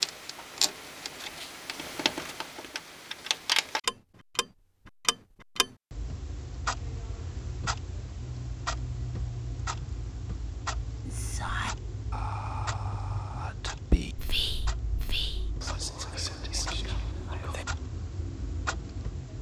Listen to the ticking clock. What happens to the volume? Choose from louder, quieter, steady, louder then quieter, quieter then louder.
quieter.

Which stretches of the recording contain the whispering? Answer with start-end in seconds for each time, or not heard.
11.1-17.6.